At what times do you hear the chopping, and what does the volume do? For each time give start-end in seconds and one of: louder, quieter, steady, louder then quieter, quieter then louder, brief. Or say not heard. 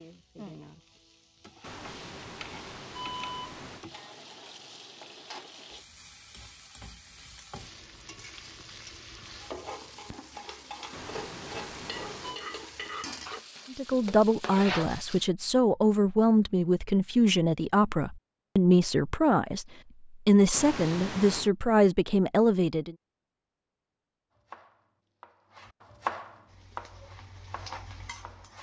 24.4-28.5 louder then quieter.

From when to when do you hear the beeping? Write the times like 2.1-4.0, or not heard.
1.6-3.9, 10.9-12.4, 20.5-21.5.